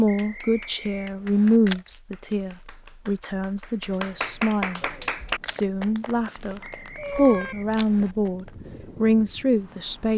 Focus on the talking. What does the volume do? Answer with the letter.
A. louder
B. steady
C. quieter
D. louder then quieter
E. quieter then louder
E.